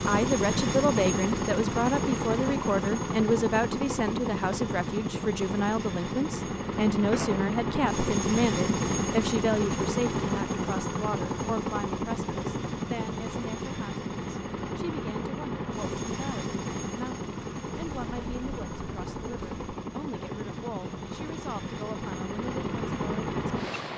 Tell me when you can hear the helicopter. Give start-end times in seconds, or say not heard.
0.0-23.9.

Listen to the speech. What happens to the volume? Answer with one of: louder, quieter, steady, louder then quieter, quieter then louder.
quieter.